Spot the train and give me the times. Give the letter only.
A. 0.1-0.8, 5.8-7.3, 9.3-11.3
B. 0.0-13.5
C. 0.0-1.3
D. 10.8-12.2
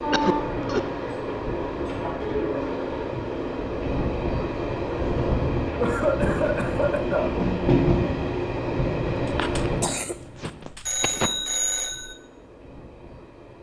B.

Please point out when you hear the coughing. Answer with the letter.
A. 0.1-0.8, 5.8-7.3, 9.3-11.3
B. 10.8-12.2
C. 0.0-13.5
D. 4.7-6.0
A.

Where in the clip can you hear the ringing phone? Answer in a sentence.
The ringing phone can be heard from 10.8 to 12.2 s.